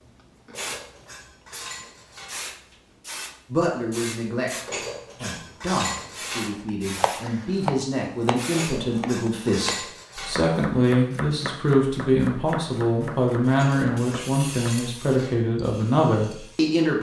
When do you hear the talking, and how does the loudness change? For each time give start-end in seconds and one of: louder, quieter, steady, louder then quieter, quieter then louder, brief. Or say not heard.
3.5-16.9 louder.